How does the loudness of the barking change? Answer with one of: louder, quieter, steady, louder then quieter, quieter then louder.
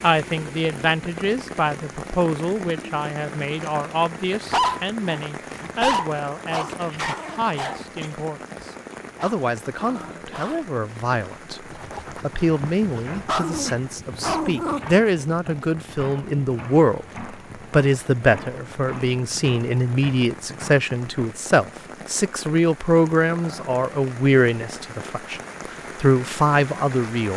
quieter then louder.